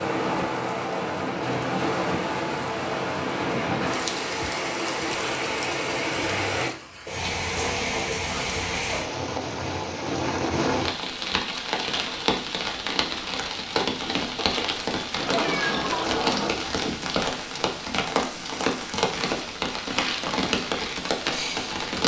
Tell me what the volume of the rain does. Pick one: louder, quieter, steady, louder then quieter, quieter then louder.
steady.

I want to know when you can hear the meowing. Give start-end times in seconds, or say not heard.
15.2-16.6.